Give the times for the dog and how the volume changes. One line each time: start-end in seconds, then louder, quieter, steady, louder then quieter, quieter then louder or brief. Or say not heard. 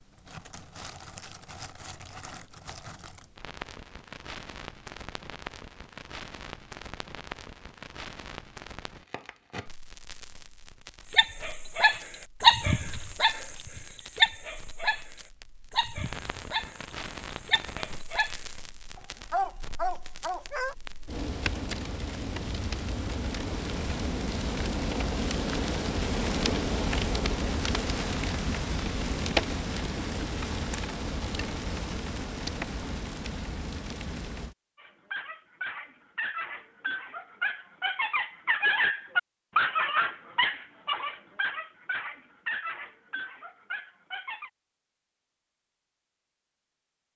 11.1-20.8 quieter then louder
34.8-44.5 louder then quieter.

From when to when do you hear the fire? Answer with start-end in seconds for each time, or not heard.
0.0-34.5.